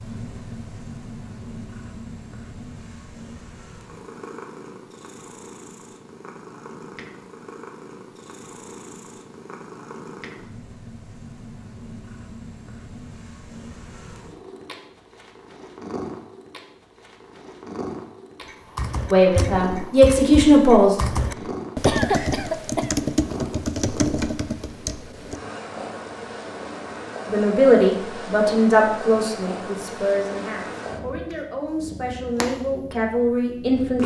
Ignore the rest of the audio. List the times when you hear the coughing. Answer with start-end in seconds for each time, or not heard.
21.9-23.0.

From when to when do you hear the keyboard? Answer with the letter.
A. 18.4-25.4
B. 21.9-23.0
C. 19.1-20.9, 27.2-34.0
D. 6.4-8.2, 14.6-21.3
A.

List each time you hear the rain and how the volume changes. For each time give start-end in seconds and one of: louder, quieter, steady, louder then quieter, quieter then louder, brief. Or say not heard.
not heard.